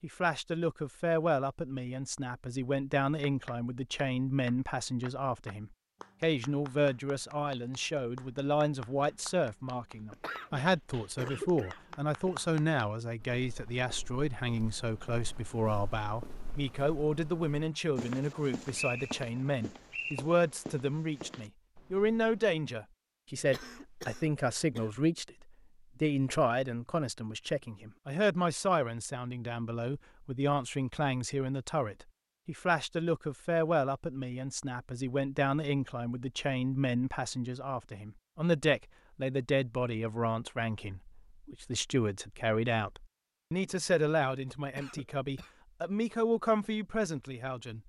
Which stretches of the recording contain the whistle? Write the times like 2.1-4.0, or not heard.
18.8-20.2.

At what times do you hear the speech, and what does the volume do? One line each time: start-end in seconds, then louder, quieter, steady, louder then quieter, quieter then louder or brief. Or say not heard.
0.0-47.8 steady.